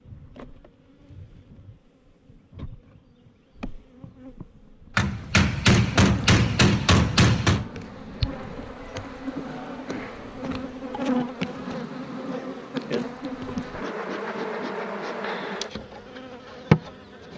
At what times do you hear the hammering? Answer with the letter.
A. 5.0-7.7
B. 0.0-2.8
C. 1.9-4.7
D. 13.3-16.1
A.